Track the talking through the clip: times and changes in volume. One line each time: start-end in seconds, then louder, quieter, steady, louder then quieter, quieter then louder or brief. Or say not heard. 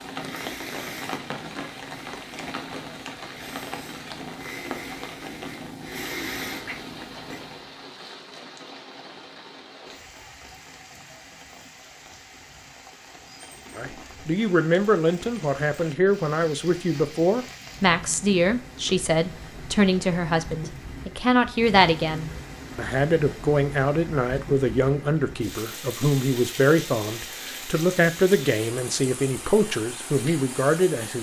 13.8-31.1 steady.